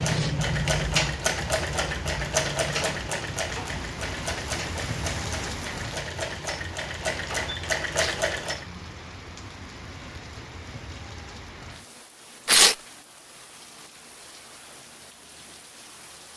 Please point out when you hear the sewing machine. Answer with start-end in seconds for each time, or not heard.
0.0-8.7.